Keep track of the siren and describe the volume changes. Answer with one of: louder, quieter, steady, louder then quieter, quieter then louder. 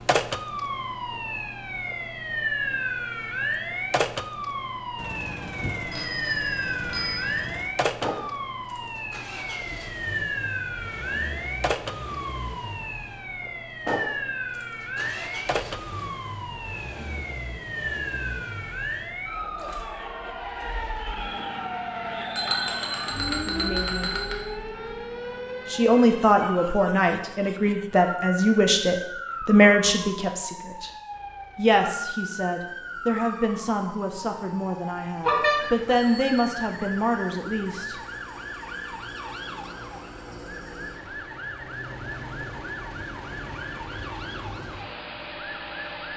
quieter.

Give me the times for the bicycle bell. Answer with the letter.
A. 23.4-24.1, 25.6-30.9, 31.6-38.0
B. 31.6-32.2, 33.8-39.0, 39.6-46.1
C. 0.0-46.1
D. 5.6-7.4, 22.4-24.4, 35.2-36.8
D.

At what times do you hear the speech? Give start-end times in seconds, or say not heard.
23.4-24.1, 25.6-30.9, 31.6-38.0.